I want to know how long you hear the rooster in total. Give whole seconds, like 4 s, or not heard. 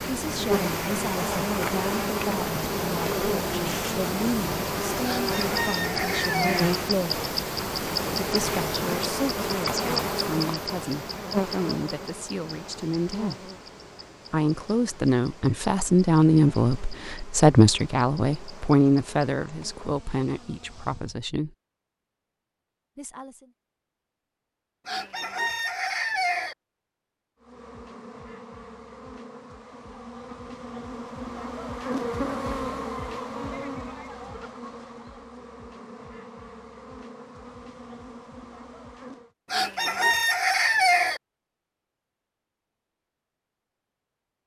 5 s.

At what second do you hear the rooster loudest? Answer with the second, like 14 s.
41 s.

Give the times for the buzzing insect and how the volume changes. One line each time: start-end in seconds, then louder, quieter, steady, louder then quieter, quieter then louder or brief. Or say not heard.
0.0-21.1 quieter
27.4-39.3 louder then quieter.